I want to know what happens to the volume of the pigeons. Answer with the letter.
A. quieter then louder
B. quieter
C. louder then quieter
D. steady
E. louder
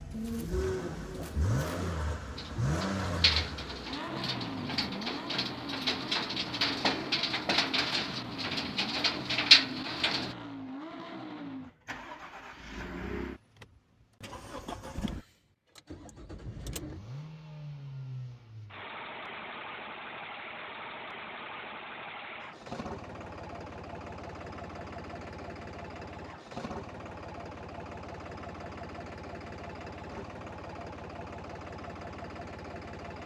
E.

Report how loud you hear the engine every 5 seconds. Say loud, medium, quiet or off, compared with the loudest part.
loud, medium, medium, medium, medium, medium, medium.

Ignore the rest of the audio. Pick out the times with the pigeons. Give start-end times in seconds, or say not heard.
0.1-10.3.